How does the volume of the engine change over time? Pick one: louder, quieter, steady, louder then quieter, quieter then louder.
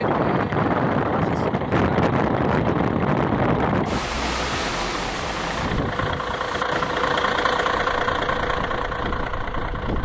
louder.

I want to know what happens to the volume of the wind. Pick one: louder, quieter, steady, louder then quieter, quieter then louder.
quieter.